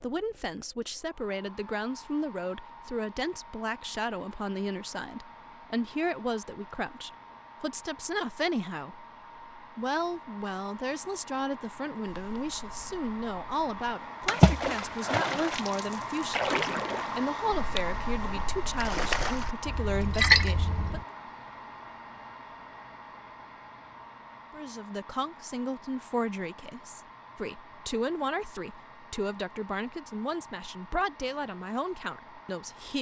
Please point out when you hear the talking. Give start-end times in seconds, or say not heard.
0.0-21.0, 24.5-32.9.